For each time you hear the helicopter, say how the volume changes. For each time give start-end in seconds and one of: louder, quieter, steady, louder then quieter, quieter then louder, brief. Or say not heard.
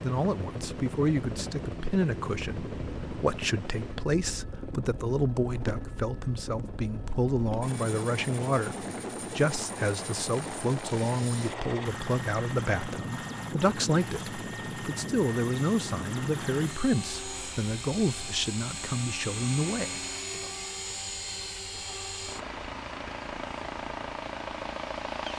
0.0-25.3 steady.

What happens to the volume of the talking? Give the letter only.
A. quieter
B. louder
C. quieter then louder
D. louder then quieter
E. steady
E.